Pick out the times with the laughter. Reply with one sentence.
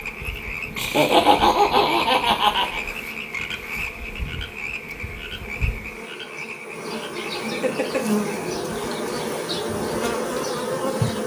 You can hear the laughter from 0.8 to 2.8 s and from 7.5 to 8.1 s.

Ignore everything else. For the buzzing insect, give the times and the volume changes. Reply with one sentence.
The buzzing insect can be heard from 0.0 to 11.2 s, getting louder.